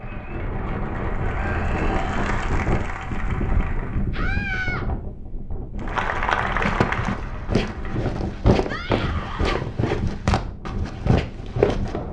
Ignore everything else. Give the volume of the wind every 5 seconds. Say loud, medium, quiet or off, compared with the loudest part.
loud, medium, medium.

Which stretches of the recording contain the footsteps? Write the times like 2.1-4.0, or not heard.
6.5-12.0.